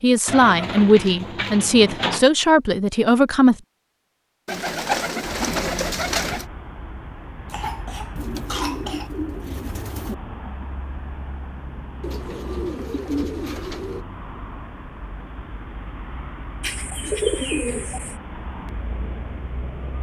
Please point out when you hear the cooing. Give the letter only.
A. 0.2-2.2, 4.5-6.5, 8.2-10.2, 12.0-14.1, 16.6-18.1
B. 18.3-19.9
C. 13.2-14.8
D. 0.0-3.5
A.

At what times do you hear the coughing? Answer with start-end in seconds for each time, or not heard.
7.5-9.1.